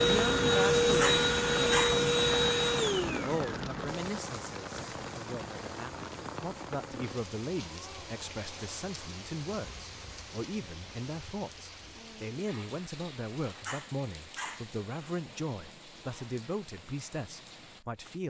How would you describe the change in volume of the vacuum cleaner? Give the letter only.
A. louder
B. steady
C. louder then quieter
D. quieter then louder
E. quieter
E.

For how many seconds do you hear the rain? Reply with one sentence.
You can hear the rain for 18 seconds altogether.